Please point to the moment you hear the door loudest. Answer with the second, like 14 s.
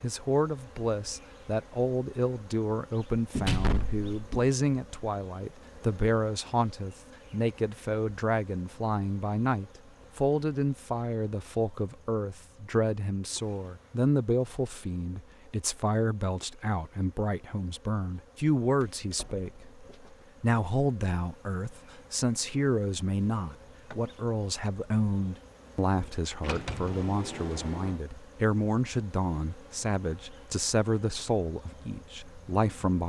4 s.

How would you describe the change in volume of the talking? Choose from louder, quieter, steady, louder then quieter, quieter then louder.
steady.